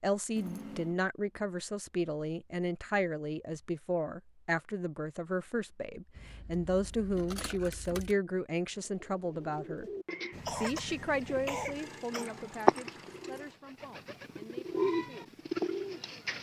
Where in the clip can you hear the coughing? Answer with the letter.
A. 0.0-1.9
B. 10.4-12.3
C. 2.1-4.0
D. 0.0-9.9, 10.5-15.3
B.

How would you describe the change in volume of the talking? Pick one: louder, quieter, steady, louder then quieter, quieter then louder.
quieter.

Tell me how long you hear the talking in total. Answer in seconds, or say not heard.
15 s.